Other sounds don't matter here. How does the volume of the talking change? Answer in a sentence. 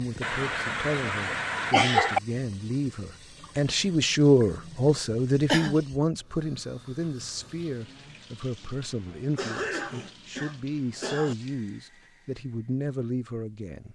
The loudness of the talking goes up, then down.